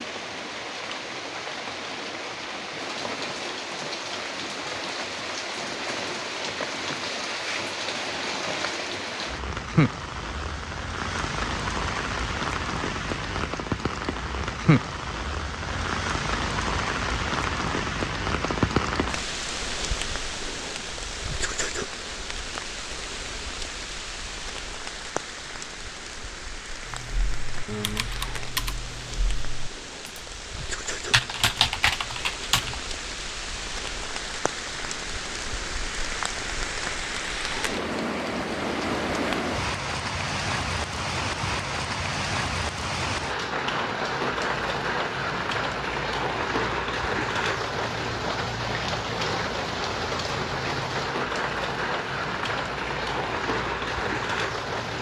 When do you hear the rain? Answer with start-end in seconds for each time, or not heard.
0.0-54.9.